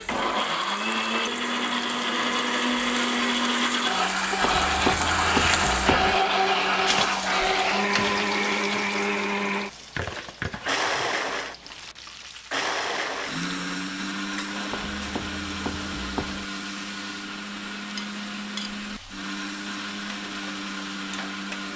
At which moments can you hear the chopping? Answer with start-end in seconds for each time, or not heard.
4.4-6.2, 14.7-16.4.